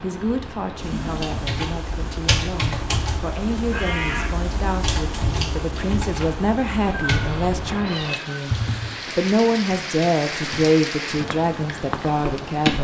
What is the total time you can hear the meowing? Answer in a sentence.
You can hear the meowing for 2 seconds altogether.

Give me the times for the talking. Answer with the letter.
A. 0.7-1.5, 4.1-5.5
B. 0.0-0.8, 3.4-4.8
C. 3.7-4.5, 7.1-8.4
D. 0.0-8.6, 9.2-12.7
D.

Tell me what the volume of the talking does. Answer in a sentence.
The volume of the talking goes up.